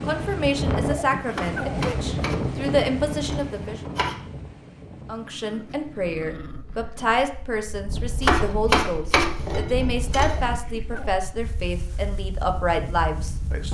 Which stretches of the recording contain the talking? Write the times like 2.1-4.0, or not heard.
0.0-3.8, 5.0-13.6.